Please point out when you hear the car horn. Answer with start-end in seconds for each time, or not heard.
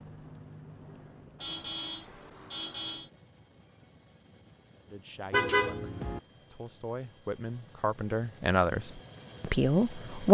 1.4-3.1, 5.3-6.2.